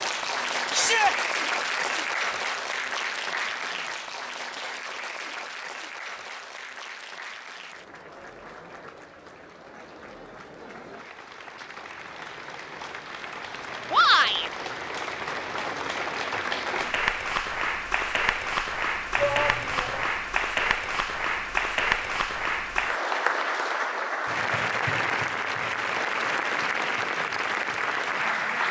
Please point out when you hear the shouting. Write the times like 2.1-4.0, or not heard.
0.7-1.1, 13.9-14.5, 19.1-20.1.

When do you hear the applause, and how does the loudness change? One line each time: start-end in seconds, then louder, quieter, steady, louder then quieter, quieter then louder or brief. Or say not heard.
0.0-28.6 quieter then louder.